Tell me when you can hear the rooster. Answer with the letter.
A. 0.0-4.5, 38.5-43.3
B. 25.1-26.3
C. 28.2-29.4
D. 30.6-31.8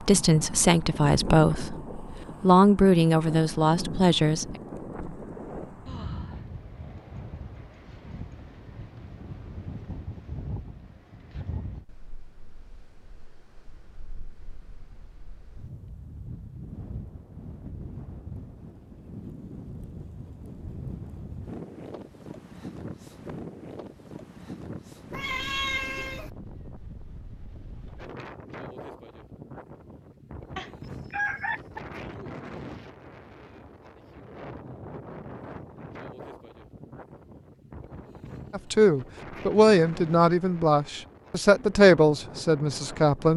D.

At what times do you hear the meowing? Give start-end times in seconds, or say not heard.
25.1-26.3.